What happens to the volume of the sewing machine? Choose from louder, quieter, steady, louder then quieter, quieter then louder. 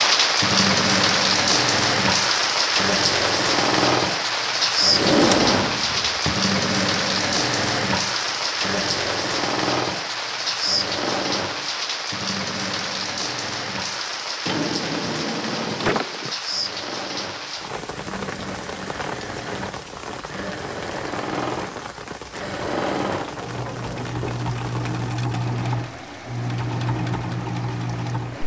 quieter then louder.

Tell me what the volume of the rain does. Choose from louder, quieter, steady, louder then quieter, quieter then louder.
quieter.